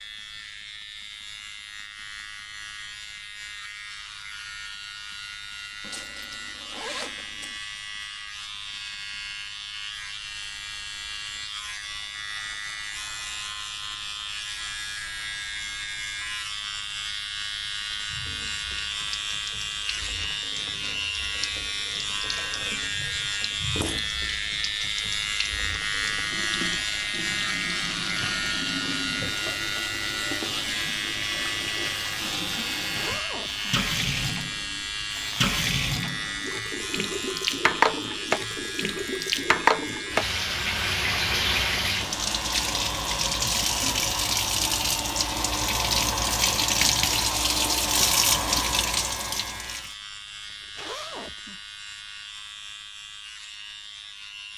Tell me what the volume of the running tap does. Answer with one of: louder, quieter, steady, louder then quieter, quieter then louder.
louder.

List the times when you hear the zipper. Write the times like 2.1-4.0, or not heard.
5.8-7.5, 32.9-33.7, 50.5-51.6.